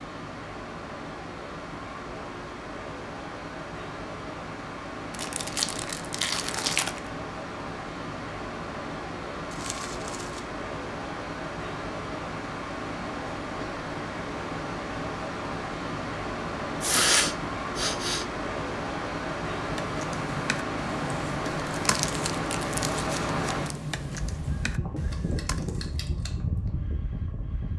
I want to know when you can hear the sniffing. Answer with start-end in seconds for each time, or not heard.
16.8-18.2.